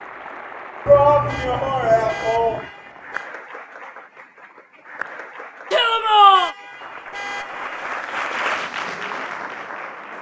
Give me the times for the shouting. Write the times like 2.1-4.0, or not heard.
0.8-2.6, 5.7-6.5.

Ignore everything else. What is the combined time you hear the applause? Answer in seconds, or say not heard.
10 s.